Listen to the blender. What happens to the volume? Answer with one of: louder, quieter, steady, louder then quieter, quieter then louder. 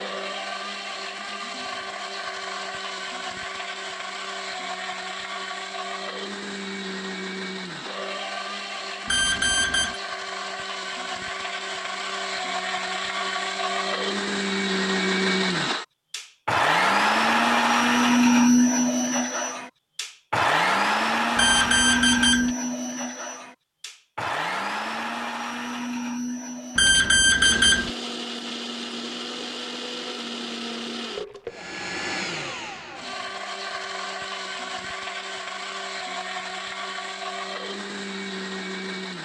louder then quieter.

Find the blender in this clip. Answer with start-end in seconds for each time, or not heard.
0.0-39.1.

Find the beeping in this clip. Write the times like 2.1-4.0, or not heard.
9.1-10.0, 21.4-22.5, 26.8-27.9.